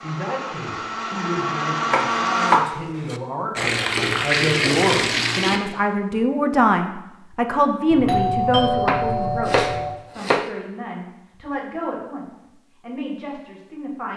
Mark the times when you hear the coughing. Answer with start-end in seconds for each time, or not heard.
not heard.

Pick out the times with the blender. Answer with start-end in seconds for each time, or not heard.
0.0-2.6.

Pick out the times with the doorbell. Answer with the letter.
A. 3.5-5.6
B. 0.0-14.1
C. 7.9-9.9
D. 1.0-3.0
C.